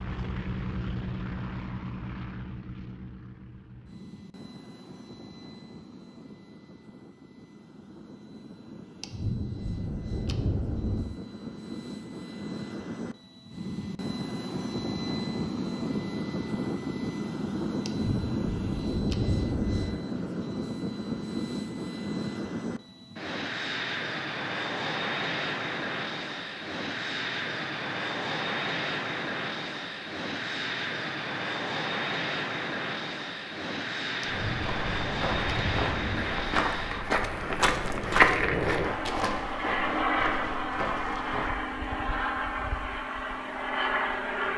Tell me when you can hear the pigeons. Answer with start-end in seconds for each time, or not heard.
not heard.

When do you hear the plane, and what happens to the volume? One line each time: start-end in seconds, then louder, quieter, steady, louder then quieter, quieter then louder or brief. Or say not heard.
0.0-44.5 louder.